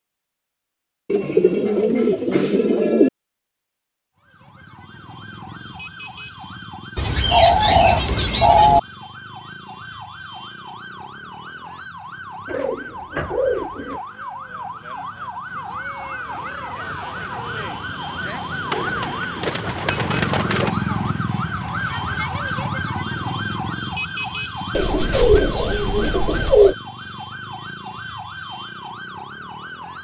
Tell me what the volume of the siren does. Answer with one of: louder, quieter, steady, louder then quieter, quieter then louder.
louder then quieter.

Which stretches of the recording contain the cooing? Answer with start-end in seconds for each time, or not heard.
1.1-3.1, 7.0-8.8, 12.4-14.0, 18.7-20.7, 24.7-26.8.